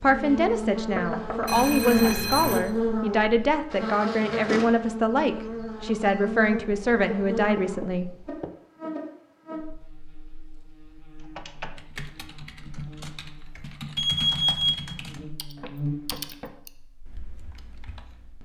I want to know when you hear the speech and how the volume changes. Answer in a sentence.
You can hear the speech from 0.0 to 8.1 s, at a steady volume.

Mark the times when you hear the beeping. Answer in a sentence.
The beeping can be heard from 1.4 to 2.6 s and from 13.9 to 14.9 s.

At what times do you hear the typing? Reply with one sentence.
You can hear the typing from 11.2 to 18.4 s.